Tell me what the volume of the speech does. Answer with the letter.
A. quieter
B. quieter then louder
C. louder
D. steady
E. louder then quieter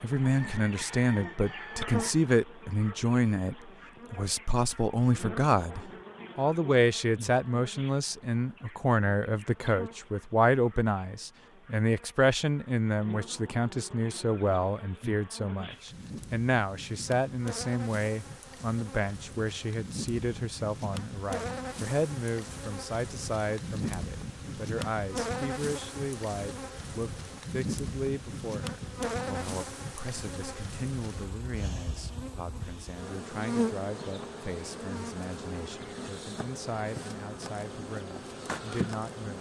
A.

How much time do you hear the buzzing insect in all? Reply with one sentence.
You can hear the buzzing insect for 39 seconds altogether.